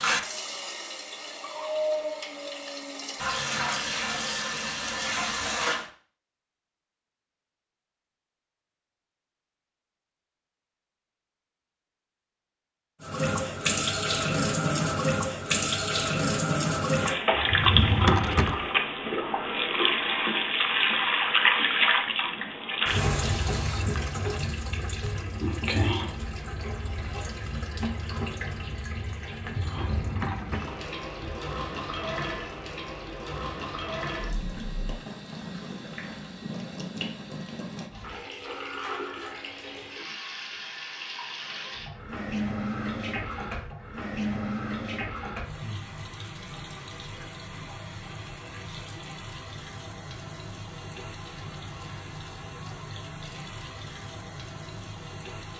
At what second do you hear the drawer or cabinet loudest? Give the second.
18 s.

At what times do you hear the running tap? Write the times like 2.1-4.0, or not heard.
0.0-5.9, 13.0-55.5.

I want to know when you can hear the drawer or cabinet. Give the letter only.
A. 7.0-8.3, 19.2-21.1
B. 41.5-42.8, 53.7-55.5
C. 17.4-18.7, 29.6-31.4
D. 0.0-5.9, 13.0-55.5
C.